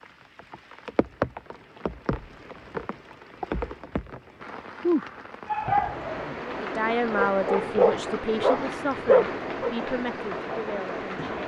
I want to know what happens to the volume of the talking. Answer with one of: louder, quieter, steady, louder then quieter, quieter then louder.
quieter.